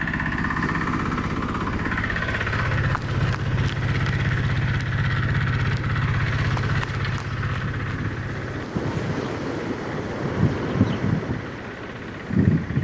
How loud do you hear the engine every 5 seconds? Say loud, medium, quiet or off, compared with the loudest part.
loud, loud, quiet.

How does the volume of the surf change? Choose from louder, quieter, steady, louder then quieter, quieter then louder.
louder.